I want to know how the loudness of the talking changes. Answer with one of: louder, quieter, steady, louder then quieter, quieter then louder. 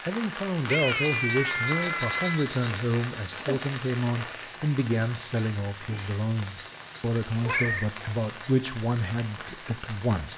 steady.